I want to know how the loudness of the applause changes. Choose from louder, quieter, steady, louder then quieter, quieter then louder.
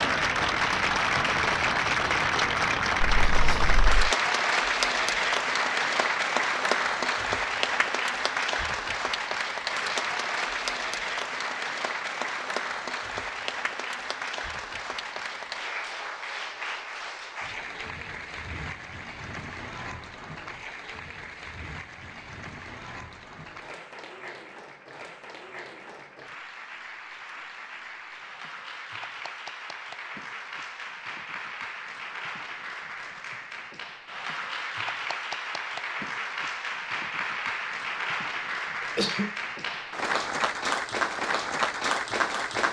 quieter then louder.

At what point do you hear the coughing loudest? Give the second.
39 s.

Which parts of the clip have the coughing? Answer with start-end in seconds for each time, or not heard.
3.0-4.2, 38.8-39.4.